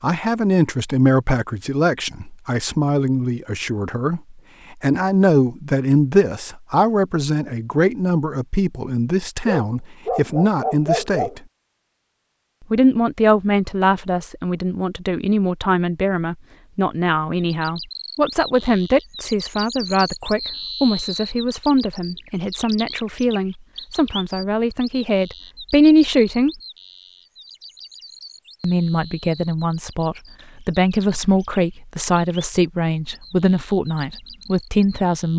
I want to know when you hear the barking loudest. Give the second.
11 s.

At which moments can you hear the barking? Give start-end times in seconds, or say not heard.
9.4-11.3.